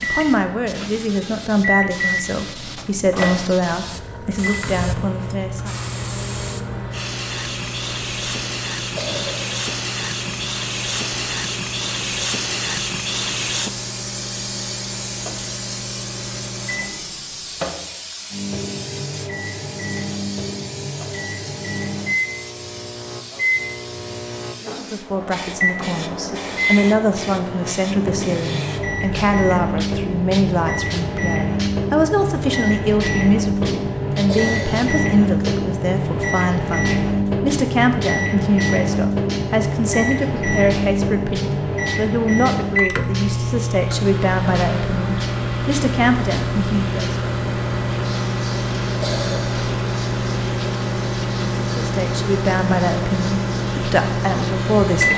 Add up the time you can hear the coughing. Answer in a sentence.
The coughing can be heard for 2 seconds in total.